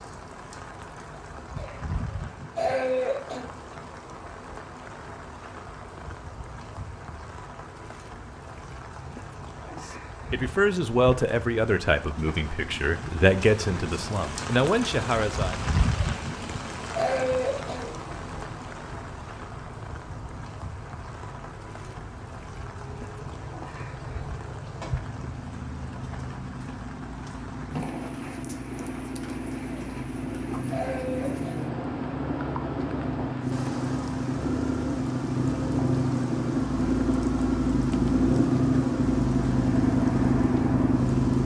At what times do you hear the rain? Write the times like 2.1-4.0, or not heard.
0.0-41.4.